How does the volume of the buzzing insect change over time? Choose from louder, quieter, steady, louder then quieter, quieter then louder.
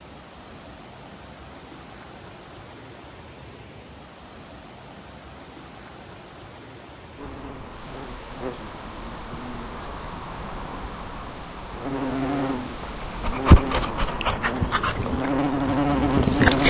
louder.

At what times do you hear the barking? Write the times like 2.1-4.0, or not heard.
12.8-16.6.